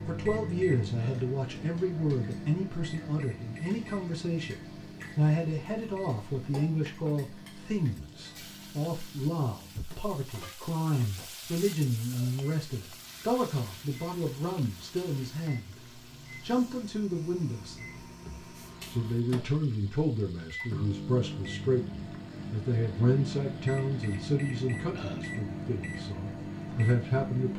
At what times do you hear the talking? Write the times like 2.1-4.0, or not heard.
0.0-15.8, 16.4-27.5.